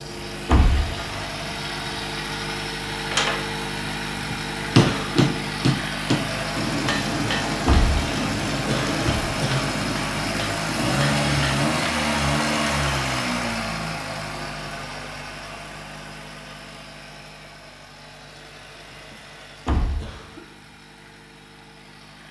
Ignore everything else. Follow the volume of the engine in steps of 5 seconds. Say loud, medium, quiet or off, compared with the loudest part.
medium, loud, loud, quiet, quiet.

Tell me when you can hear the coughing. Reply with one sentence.
The coughing can be heard from 4.8 to 5.2 s, from 8.7 to 9.8 s and from 19.9 to 20.4 s.